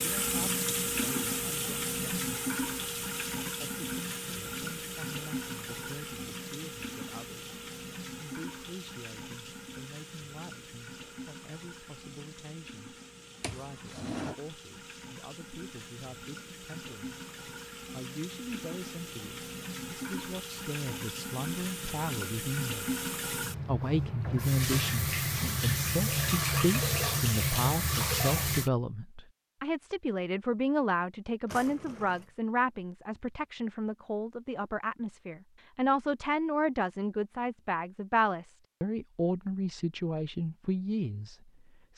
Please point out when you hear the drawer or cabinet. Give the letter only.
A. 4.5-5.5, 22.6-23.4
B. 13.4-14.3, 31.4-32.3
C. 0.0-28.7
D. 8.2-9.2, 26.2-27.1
B.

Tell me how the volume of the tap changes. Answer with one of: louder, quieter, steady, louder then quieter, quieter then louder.
quieter then louder.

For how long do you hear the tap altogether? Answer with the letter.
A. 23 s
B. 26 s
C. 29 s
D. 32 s
C.